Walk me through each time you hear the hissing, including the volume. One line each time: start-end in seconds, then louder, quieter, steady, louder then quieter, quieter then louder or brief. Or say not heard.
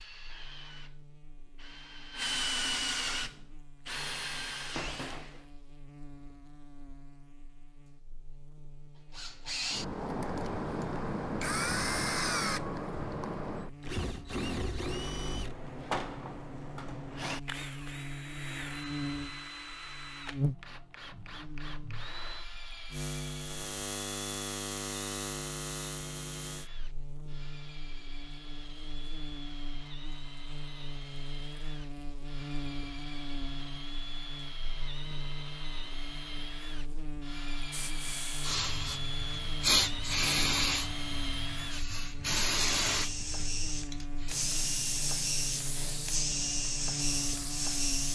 37.7-48.1 quieter.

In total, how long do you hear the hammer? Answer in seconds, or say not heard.
not heard.